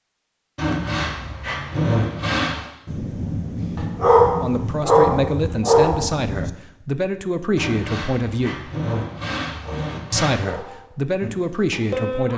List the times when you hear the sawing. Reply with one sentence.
You can hear the sawing from 0.6 to 2.7 s and from 7.5 to 10.4 s.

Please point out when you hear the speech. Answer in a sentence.
The speech can be heard from 4.4 to 8.7 s and from 10.1 to 12.3 s.